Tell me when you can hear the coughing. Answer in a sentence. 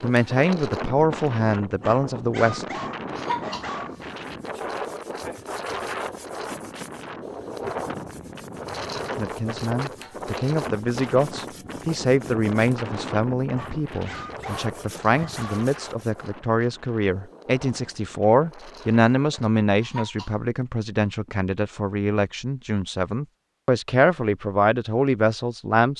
The coughing can be heard from 3.1 to 4.1 s and from 19.8 to 20.4 s.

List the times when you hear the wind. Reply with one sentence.
You can hear the wind from 0.0 to 19.5 s.